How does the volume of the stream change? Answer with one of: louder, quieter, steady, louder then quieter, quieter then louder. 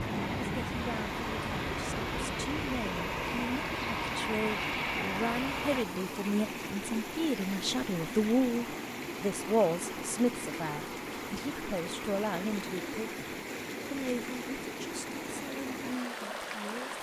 steady.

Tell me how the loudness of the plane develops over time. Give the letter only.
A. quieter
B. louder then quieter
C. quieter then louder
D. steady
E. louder
D.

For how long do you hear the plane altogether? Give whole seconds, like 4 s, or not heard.
6 s.